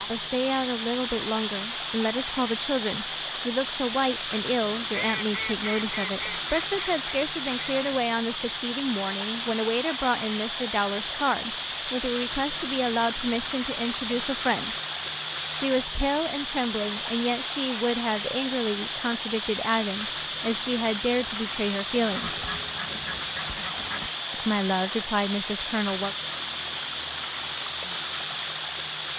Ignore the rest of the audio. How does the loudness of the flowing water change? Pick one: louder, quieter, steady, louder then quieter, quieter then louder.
steady.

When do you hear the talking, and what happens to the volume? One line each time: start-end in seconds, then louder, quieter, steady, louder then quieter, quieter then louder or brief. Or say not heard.
0.1-14.8 steady
15.5-22.4 steady
24.3-26.1 brief.